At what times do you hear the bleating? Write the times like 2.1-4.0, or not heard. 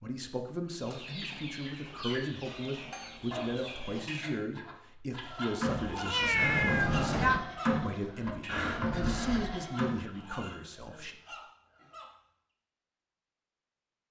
5.1-10.0.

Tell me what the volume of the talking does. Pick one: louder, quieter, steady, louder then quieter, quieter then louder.
steady.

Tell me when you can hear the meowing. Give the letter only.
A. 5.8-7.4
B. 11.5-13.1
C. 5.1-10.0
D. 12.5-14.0
A.